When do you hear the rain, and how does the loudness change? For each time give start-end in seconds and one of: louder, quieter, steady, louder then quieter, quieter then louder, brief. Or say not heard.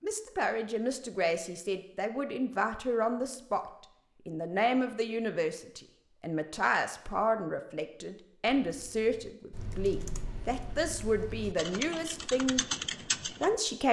not heard.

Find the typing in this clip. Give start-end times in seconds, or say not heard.
8.4-13.6.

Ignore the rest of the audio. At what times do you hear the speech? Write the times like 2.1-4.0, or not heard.
0.0-3.6, 4.2-12.7, 13.4-13.8.